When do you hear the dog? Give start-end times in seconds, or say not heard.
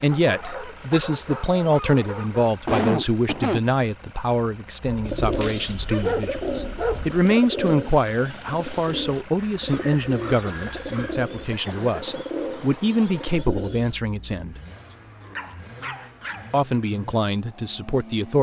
0.1-2.5, 4.8-7.2, 9.3-11.2, 14.9-16.6.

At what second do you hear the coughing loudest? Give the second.
3 s.